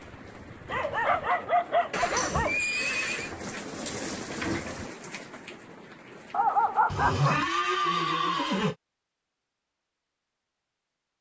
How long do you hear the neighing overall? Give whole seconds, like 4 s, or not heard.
3 s.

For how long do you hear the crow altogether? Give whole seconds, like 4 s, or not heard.
not heard.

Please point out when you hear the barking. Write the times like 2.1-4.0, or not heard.
0.7-2.6, 6.3-7.4.